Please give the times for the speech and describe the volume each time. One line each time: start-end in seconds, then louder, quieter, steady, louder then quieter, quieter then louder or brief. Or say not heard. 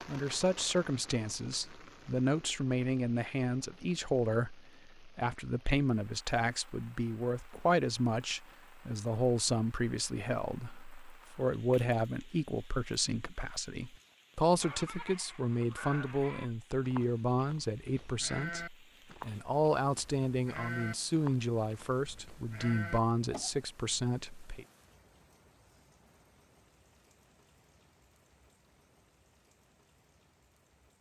0.1-24.6 steady.